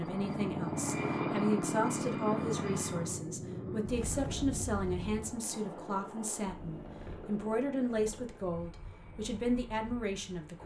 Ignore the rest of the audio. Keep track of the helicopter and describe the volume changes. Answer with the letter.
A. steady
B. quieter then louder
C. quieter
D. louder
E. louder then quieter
C.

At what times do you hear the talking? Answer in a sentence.
You can hear the talking from 0.0 to 10.6 s.